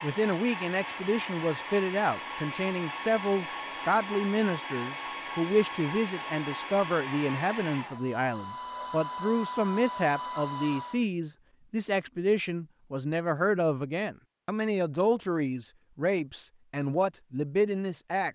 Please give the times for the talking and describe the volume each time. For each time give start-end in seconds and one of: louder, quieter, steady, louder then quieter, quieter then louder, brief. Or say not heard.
0.0-18.3 steady.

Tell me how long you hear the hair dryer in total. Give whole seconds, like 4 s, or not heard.
11 s.